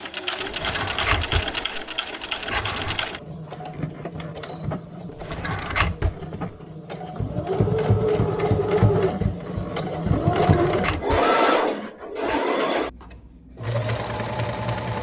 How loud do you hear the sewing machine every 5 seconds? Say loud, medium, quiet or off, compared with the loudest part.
medium, loud, loud.